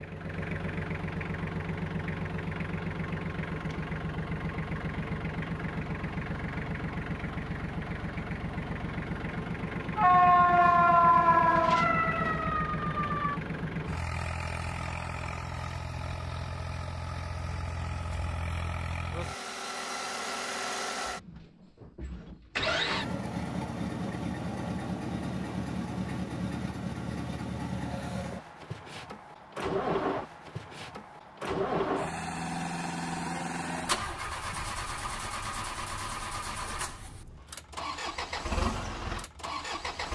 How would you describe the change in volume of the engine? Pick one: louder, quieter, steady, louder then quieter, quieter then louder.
steady.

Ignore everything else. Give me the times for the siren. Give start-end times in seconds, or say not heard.
9.9-13.4.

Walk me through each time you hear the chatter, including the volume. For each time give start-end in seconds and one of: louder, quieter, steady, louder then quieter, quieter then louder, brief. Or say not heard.
not heard.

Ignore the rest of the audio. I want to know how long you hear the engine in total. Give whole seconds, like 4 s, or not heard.
40 s.